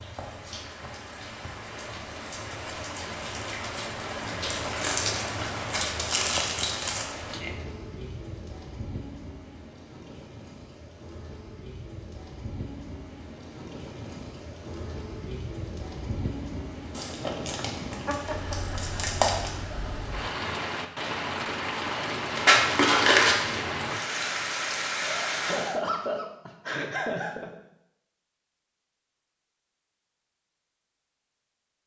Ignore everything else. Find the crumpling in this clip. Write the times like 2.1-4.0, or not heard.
4.5-7.0, 16.9-19.5, 22.4-23.6.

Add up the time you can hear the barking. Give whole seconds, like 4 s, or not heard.
not heard.